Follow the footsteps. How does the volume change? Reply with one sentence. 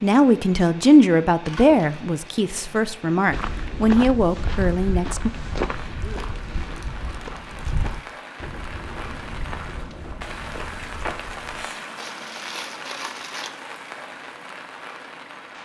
The volume of the footsteps goes down.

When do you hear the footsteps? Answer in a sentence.
The footsteps can be heard from 3.3 to 11.7 s.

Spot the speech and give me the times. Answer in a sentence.
The speech can be heard from 0.0 to 5.3 s.